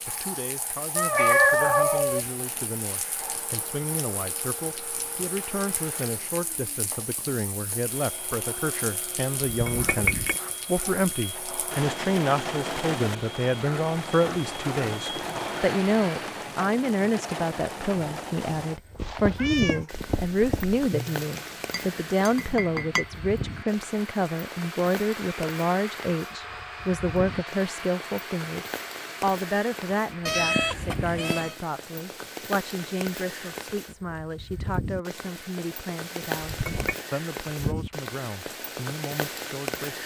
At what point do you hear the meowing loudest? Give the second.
1 s.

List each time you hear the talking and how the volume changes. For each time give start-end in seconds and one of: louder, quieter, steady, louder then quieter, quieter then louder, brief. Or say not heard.
0.1-40.0 louder then quieter.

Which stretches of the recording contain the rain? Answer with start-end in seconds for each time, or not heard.
0.0-40.0.